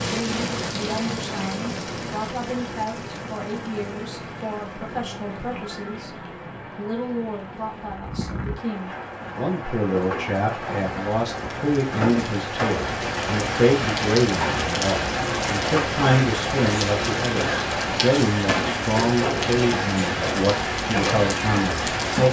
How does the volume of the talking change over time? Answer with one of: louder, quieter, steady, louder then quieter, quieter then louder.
louder.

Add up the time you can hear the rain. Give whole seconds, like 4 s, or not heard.
22 s.